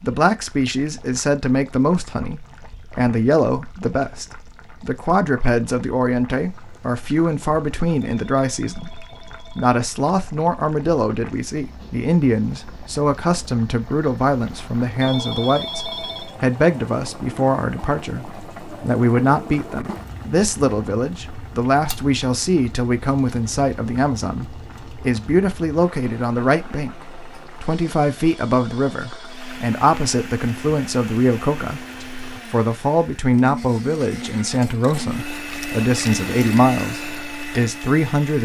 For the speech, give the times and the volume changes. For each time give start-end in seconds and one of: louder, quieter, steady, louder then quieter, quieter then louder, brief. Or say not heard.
0.0-38.3 steady.